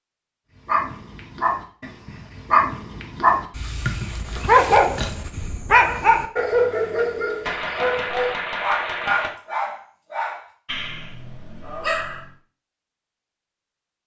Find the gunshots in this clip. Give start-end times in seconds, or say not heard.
7.5-9.3.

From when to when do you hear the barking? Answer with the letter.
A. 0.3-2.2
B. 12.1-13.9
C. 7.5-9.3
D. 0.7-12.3
D.